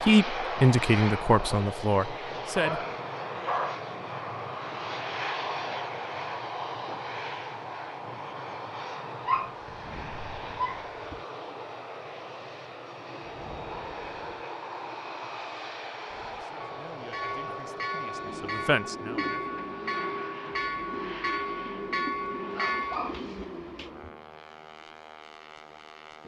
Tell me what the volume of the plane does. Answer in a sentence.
The volume of the plane goes down.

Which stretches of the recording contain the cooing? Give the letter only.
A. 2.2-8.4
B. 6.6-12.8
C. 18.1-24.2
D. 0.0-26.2
C.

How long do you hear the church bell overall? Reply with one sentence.
You can hear the church bell for 7 seconds altogether.